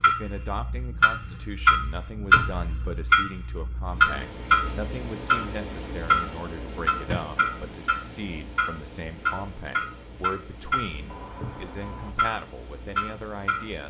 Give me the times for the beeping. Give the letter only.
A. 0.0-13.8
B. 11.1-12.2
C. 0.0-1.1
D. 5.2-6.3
B.